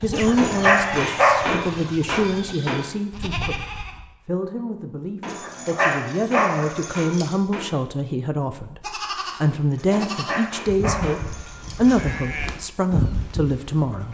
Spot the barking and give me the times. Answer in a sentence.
The barking can be heard from 0.1 to 1.6 s, from 5.2 to 7.3 s and from 9.8 to 12.4 s.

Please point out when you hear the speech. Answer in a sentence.
The speech can be heard from 0.0 to 14.1 s.